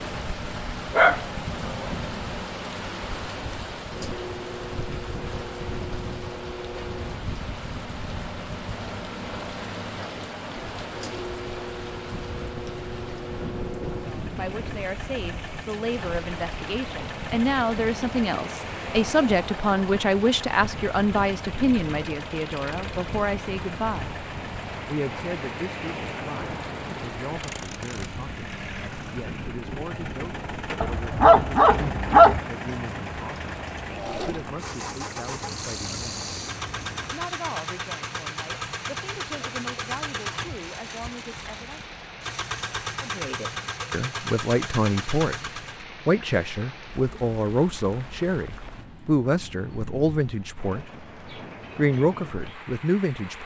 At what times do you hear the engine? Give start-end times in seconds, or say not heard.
0.0-45.9.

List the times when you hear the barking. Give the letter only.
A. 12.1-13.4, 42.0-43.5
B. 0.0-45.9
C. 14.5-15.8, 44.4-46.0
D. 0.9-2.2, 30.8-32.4
D.